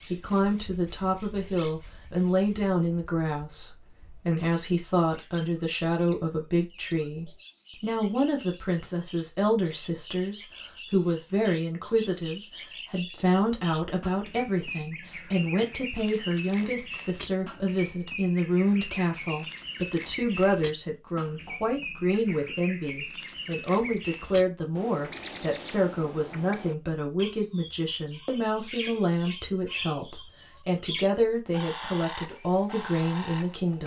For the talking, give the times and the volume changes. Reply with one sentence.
The talking can be heard from 0.1 to 33.8 s, at a steady volume.